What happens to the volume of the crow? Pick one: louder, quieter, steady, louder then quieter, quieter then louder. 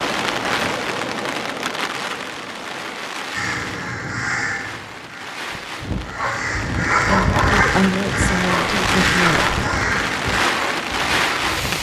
quieter then louder.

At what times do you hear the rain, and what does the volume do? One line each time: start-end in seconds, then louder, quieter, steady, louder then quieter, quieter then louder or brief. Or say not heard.
0.0-11.7 quieter then louder.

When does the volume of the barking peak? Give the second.
7 s.